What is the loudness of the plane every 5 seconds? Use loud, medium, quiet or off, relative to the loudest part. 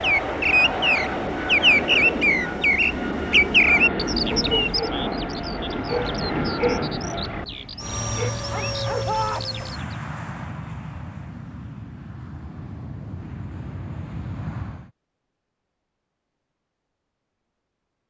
loud, loud, medium, off.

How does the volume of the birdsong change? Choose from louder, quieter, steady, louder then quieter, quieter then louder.
quieter.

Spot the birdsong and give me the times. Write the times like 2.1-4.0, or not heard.
0.0-10.0.